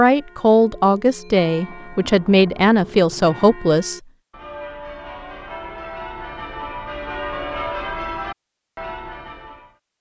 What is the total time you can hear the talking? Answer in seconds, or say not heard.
4 s.